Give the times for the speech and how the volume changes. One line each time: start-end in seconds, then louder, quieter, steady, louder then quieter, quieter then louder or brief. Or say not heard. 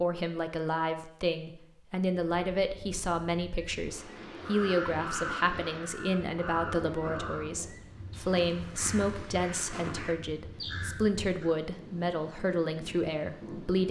0.0-13.8 steady.